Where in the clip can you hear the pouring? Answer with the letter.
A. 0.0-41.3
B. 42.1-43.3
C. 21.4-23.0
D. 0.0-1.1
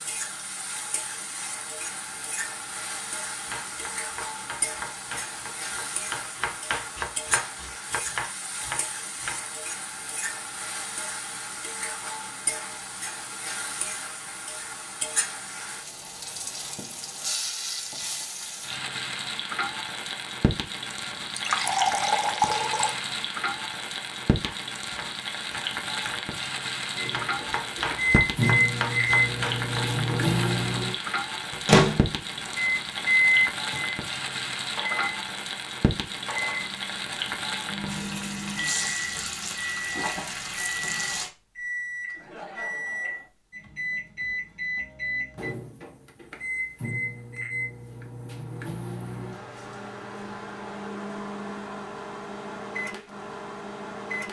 C.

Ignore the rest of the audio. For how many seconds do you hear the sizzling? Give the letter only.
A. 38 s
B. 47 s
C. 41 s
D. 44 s
C.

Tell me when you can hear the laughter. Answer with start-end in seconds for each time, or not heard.
42.1-43.3.